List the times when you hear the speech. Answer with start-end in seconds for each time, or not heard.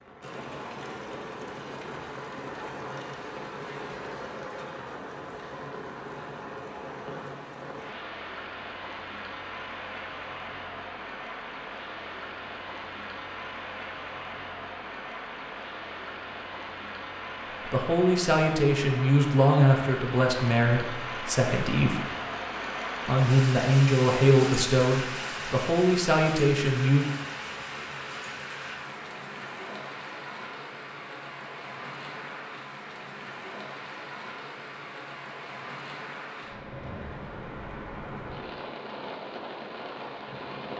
17.6-22.0, 23.1-27.1.